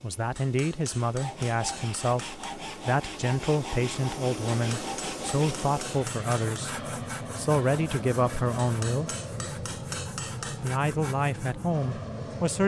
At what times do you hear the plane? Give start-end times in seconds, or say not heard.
0.0-12.6.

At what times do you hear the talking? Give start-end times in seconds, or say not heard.
0.0-9.4, 10.6-12.6.